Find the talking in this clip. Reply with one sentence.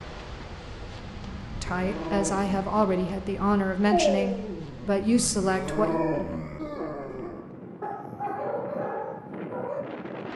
The talking can be heard from 1.6 to 6.0 s.